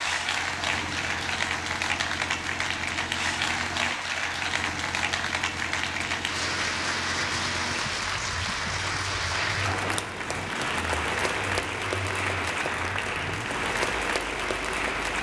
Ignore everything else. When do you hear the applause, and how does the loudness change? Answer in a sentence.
The applause can be heard from 0.0 to 15.1 s, at a steady volume.